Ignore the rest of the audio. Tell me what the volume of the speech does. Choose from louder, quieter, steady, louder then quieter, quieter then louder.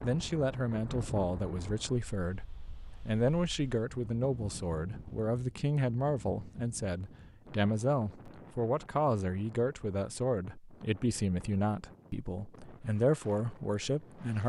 steady.